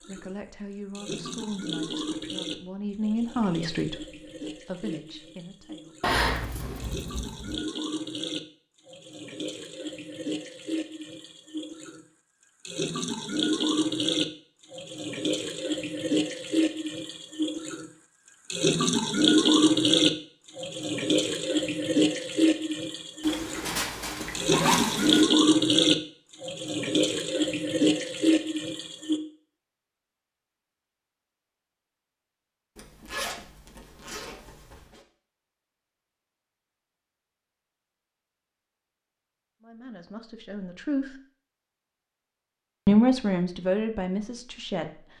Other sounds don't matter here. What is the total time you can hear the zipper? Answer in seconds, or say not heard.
6 s.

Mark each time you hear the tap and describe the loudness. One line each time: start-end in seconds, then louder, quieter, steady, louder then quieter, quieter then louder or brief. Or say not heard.
0.0-29.2 louder.